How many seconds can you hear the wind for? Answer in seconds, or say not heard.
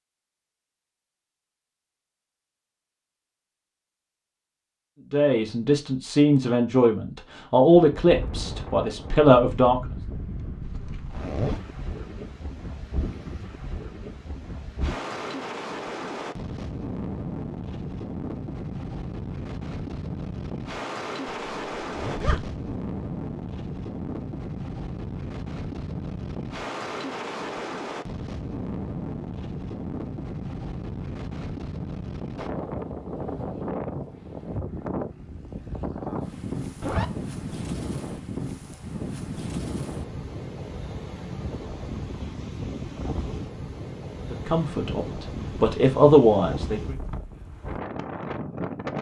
41 s.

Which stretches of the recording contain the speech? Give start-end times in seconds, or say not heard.
5.1-9.9, 44.3-47.0.